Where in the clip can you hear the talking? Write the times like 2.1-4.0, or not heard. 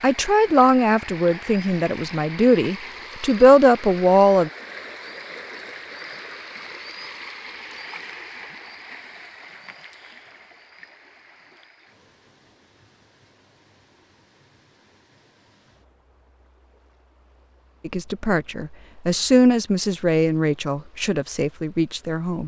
0.0-4.5, 17.9-22.4.